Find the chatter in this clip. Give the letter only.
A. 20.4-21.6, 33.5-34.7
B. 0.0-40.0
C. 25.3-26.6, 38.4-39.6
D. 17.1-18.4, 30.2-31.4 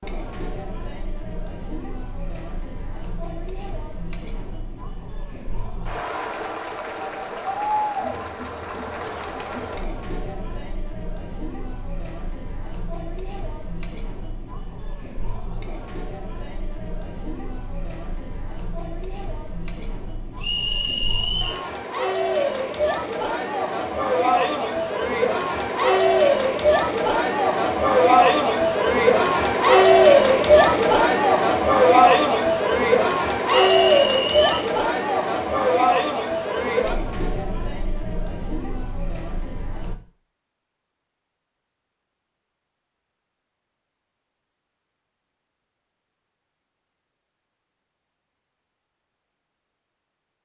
B.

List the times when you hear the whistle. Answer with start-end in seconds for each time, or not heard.
20.4-21.6, 33.5-34.7.